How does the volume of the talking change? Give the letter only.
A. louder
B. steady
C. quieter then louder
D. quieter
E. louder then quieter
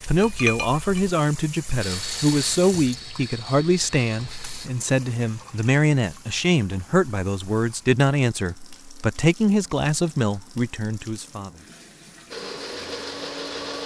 B.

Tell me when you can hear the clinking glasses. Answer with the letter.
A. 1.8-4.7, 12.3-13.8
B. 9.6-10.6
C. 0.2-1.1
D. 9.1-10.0
C.